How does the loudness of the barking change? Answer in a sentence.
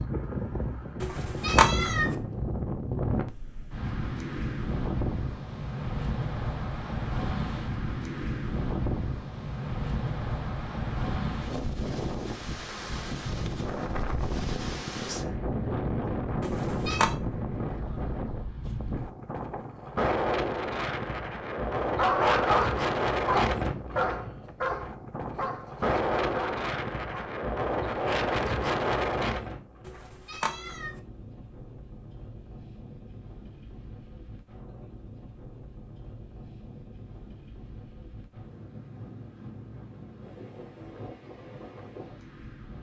The volume of the barking goes down.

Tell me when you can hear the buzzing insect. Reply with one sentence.
You can't hear the buzzing insect here.